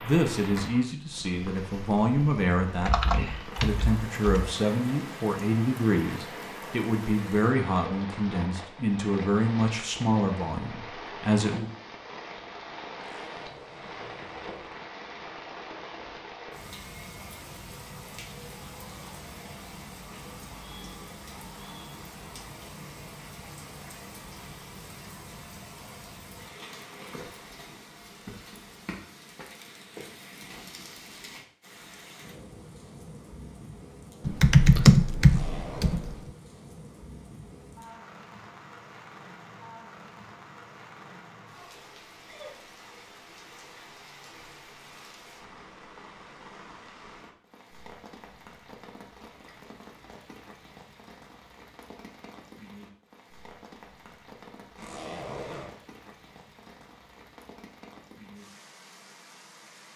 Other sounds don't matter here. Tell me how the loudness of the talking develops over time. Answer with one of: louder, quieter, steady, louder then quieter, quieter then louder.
steady.